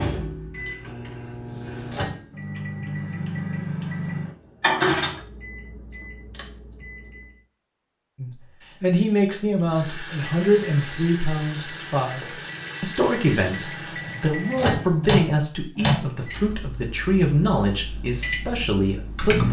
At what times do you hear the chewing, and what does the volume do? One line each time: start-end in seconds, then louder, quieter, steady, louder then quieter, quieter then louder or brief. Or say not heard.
not heard.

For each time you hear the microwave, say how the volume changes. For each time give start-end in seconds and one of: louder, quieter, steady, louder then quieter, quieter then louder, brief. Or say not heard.
0.0-7.3 louder then quieter
10.0-19.4 louder then quieter.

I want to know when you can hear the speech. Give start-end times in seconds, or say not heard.
8.2-19.4.